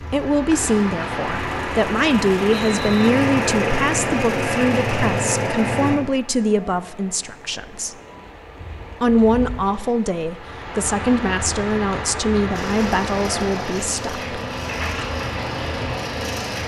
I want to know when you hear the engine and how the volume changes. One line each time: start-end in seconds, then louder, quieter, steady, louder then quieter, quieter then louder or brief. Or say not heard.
0.0-6.0 louder
12.5-16.6 steady.